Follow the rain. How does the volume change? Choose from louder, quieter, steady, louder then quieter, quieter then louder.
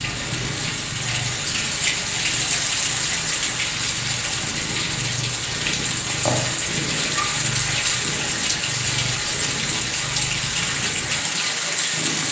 steady.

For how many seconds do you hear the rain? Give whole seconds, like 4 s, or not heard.
12 s.